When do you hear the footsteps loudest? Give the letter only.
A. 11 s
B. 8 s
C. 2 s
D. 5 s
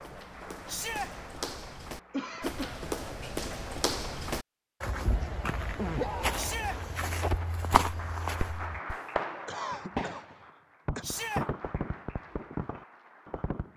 B.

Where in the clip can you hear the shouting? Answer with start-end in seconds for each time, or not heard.
0.7-1.1, 6.3-6.8, 11.0-11.4.